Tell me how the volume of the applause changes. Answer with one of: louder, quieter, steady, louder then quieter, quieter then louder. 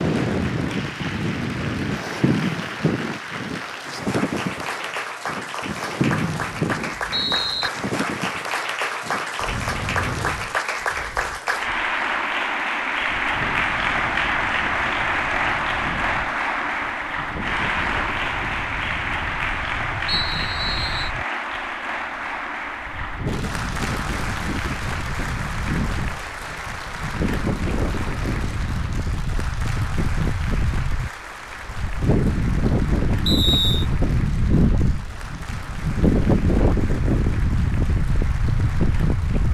louder then quieter.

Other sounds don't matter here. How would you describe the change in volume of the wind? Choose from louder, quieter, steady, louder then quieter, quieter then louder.
quieter then louder.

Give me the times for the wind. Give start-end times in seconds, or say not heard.
0.0-39.4.